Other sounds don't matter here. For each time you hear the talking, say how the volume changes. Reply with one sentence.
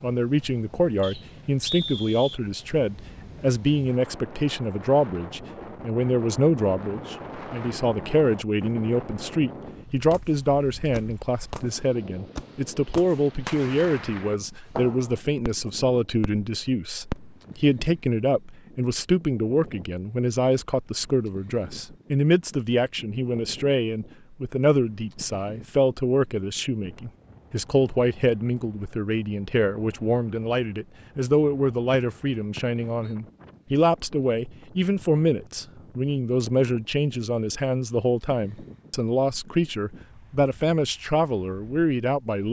You can hear the talking from 0.0 to 42.4 s, at a steady volume.